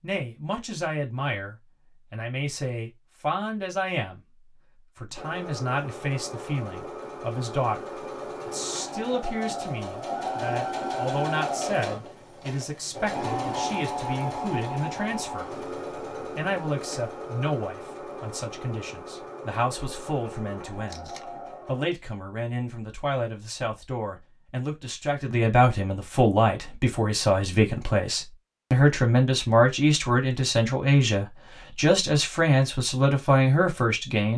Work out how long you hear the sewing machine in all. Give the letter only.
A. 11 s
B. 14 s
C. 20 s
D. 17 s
D.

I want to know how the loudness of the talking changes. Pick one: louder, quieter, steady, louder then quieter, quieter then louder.
louder.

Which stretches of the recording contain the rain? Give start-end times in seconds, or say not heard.
not heard.